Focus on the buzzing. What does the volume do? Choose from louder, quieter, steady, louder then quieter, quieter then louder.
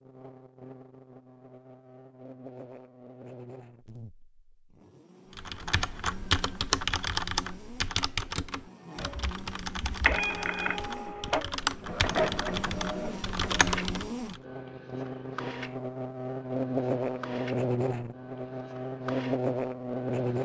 louder.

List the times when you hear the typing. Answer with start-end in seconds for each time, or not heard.
5.3-14.4.